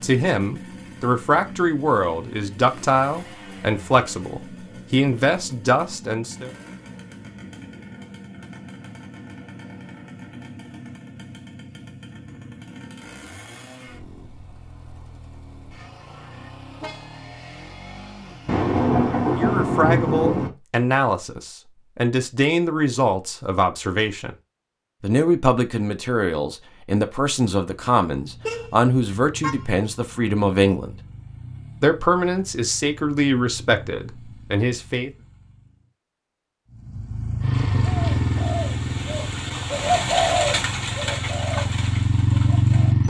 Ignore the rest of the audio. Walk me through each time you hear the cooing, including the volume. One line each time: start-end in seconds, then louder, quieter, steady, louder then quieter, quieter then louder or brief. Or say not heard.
37.6-43.0 louder then quieter.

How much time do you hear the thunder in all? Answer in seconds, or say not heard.
2 s.